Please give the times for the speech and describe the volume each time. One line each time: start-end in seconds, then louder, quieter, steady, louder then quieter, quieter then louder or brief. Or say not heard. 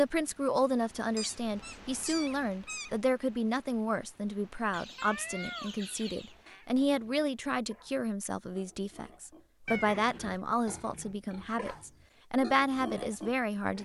0.0-13.7 steady.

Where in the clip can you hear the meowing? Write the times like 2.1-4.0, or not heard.
1.1-3.0, 5.0-6.7, 9.7-10.3.